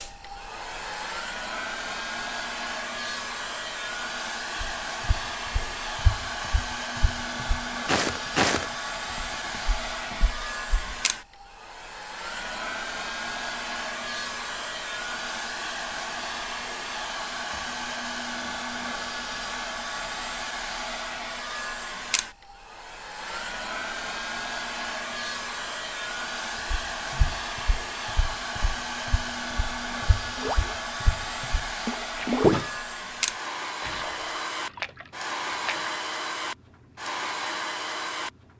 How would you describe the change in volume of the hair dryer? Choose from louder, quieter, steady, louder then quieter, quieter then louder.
steady.